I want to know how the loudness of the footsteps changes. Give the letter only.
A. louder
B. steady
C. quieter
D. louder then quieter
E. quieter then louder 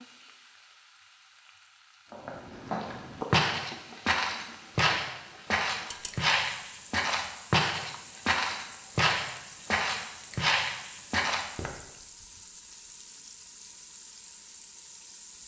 B.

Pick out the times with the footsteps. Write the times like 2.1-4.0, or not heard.
2.1-11.7.